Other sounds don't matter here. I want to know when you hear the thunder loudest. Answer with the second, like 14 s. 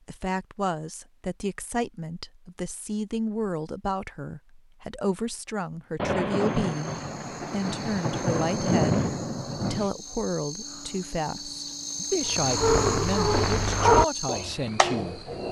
9 s.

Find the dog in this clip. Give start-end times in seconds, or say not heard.
12.2-15.4.